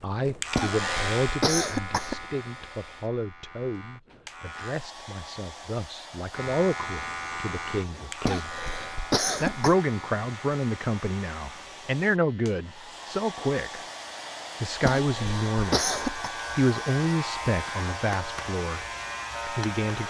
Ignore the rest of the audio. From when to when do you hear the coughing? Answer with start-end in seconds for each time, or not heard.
0.6-2.2, 8.2-9.8, 14.8-16.3.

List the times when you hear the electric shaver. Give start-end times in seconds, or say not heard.
0.0-4.8, 6.3-20.0.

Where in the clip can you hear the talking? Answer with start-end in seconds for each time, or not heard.
0.0-8.5, 9.4-13.8, 14.6-15.9, 16.6-18.8, 19.4-20.0.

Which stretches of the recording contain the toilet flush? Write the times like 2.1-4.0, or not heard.
not heard.